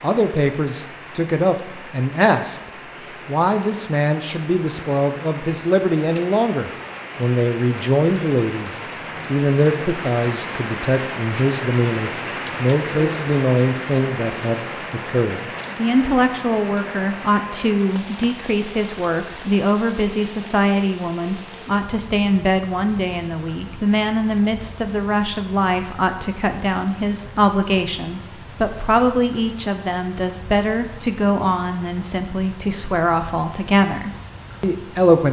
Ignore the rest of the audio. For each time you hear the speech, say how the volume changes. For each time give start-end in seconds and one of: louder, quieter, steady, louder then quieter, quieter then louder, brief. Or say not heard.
0.0-35.2 steady.